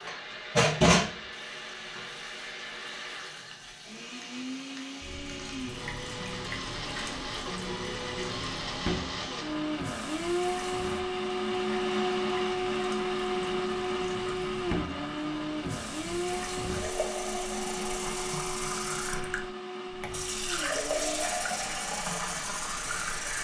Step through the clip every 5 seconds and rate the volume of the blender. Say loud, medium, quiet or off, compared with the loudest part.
medium, medium, loud, medium, medium.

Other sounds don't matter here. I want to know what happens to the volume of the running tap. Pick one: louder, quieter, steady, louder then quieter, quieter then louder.
quieter then louder.